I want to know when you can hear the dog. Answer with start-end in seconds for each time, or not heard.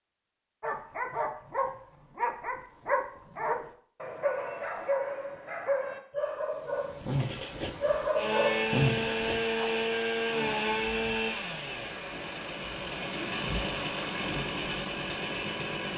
0.6-9.6.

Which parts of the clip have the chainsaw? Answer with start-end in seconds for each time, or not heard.
8.2-15.9.